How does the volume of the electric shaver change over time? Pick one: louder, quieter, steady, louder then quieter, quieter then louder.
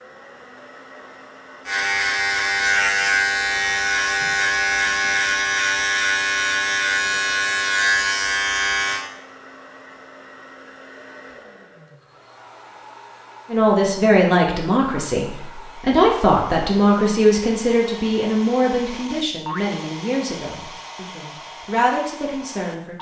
steady.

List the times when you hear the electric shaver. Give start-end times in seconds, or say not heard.
1.6-9.1.